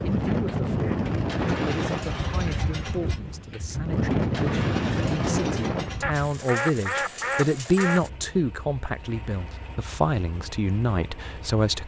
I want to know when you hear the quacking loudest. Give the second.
7 s.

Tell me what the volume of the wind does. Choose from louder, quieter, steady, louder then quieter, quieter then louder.
quieter then louder.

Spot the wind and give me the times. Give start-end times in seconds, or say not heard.
0.0-6.3.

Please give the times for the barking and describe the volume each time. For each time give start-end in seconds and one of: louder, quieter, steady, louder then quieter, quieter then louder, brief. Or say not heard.
not heard.